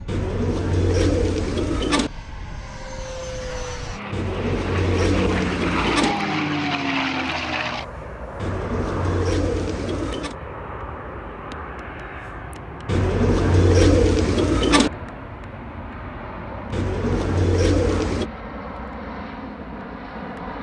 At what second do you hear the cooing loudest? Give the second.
14 s.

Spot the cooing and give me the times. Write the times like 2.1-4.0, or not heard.
0.1-2.1, 4.1-6.2, 8.3-10.3, 12.8-14.9, 16.7-18.3.